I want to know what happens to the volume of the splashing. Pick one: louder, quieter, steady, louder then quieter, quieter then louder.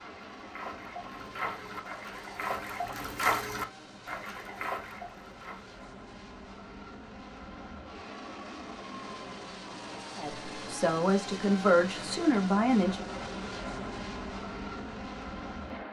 louder then quieter.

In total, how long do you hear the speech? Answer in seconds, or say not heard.
3 s.